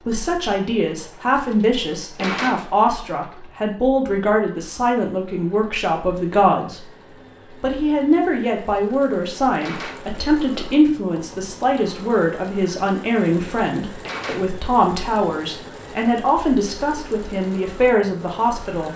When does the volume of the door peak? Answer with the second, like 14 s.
2 s.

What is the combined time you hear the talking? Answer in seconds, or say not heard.
18 s.